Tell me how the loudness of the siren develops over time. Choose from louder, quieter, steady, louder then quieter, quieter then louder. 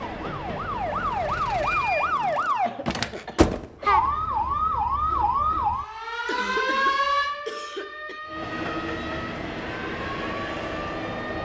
quieter.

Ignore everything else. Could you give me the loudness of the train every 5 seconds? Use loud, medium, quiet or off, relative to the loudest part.
medium, loud, loud.